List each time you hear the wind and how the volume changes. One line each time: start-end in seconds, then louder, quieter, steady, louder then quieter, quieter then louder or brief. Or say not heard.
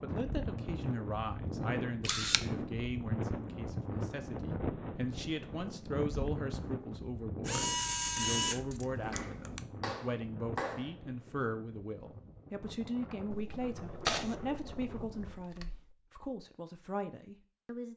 0.0-15.4 quieter.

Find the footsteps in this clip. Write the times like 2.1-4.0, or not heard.
not heard.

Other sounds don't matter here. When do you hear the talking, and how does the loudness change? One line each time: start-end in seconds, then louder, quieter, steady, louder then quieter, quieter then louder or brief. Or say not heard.
0.0-17.9 steady.